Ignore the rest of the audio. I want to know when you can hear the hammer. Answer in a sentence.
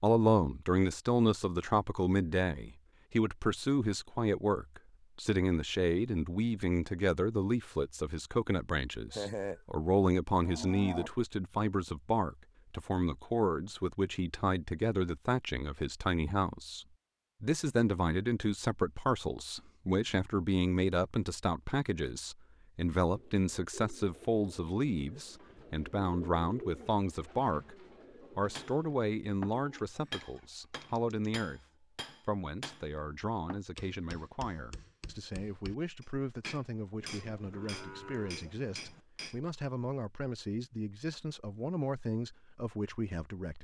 You can hear the hammer from 28.6 to 39.4 s.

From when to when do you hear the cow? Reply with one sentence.
The cow can be heard from 9.1 to 9.6 s, from 10.4 to 11.1 s and from 37.0 to 39.0 s.